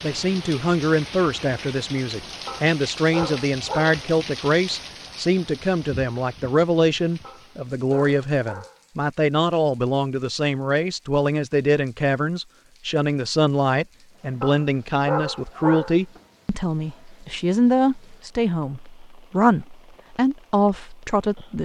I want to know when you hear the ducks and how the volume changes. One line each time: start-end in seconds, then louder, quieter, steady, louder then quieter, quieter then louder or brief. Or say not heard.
not heard.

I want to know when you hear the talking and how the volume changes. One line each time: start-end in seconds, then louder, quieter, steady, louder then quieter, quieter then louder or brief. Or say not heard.
0.0-21.6 steady.